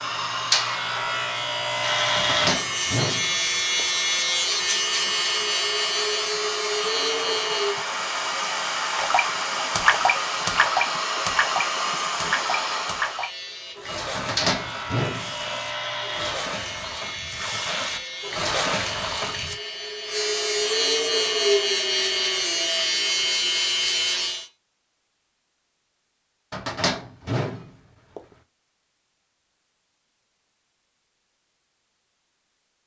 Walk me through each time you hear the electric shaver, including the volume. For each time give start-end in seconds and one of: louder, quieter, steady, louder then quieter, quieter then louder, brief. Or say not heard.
0.0-7.8 steady
13.1-24.5 louder.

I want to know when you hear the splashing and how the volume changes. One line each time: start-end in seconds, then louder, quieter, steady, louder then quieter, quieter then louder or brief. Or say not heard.
8.9-19.6 quieter then louder.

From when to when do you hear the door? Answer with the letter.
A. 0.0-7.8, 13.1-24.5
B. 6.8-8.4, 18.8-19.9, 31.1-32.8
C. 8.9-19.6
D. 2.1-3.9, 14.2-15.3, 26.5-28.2
D.